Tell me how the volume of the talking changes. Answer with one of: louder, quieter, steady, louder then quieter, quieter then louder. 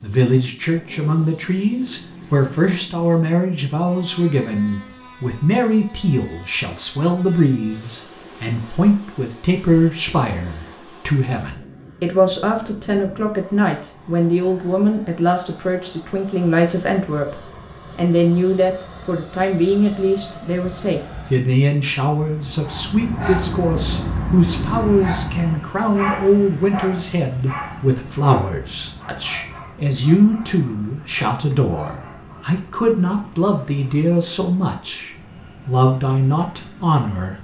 steady.